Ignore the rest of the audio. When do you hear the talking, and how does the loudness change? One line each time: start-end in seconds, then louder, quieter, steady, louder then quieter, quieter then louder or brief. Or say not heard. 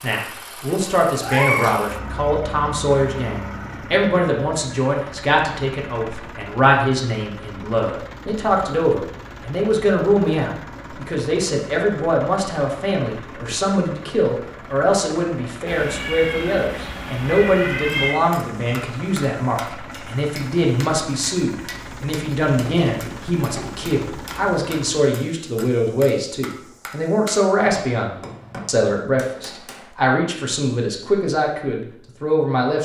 0.0-32.7 steady.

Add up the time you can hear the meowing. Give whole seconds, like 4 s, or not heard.
4 s.